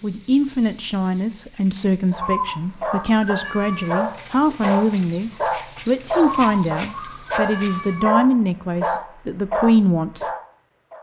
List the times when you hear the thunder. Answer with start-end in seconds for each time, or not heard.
not heard.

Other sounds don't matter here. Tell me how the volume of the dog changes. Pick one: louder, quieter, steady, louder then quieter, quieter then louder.
steady.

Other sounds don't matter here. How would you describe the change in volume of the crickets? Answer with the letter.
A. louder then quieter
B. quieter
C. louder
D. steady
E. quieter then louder
E.